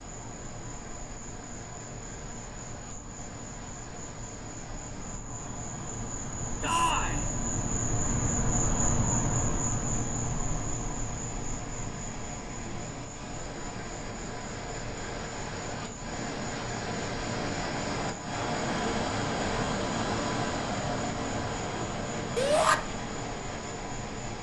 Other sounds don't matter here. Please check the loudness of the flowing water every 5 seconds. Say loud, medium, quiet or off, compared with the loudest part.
quiet, quiet, medium, loud, loud.